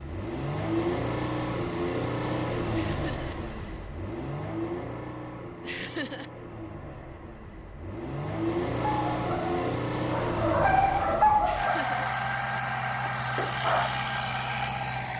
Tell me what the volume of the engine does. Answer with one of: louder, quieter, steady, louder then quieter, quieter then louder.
quieter then louder.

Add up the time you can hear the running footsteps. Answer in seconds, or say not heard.
not heard.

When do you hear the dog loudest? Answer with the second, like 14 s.
11 s.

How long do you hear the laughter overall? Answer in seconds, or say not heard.
2 s.